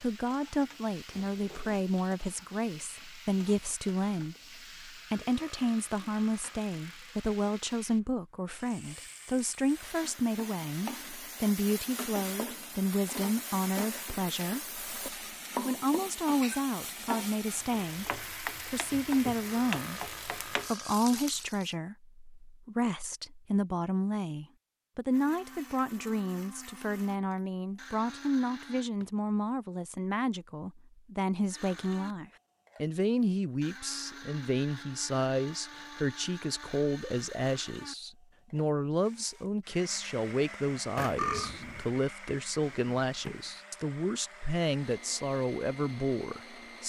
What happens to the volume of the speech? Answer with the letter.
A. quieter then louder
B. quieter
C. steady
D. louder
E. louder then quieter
C.